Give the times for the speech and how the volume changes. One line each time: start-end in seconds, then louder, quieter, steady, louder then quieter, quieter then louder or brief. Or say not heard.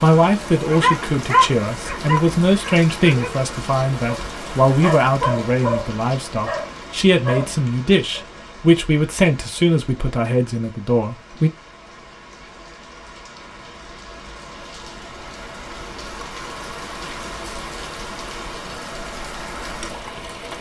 0.0-11.5 steady.